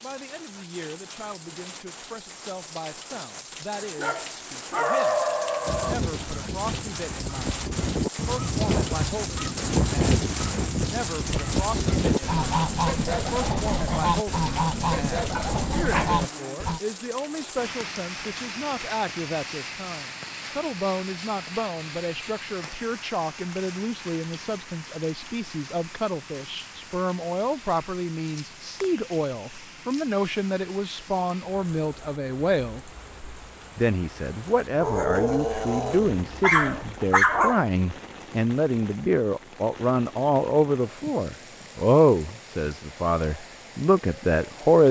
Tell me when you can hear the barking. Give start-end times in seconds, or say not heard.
4.0-6.0, 15.3-16.6, 34.8-37.6.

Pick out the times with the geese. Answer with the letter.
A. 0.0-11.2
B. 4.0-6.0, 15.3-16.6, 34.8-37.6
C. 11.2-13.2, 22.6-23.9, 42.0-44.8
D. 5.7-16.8
D.